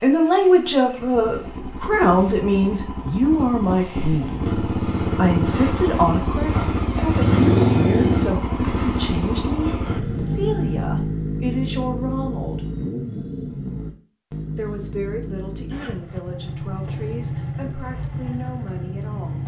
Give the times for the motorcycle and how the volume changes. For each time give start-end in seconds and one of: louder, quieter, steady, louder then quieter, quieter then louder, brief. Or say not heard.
0.1-19.4 louder then quieter.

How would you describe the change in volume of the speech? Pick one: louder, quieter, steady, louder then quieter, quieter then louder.
quieter.